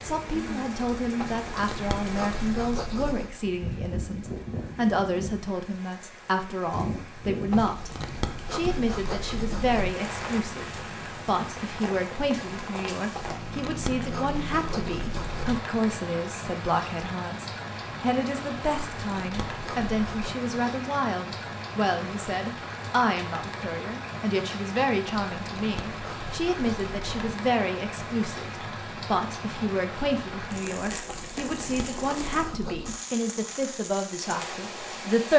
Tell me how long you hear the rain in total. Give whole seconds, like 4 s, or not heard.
35 s.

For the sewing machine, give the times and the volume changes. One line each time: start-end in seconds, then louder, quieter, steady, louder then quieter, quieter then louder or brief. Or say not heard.
not heard.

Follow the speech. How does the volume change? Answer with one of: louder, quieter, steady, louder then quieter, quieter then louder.
steady.